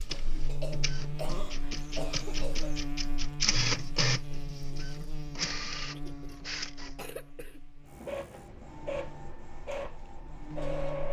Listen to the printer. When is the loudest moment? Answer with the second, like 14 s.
4 s.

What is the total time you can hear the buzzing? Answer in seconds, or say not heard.
11 s.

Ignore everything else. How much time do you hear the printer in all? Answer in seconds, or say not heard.
11 s.